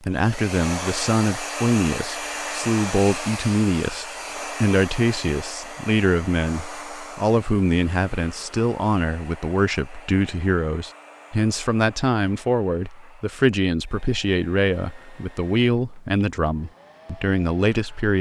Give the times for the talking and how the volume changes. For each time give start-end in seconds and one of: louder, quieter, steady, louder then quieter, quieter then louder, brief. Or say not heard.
0.0-18.1 steady.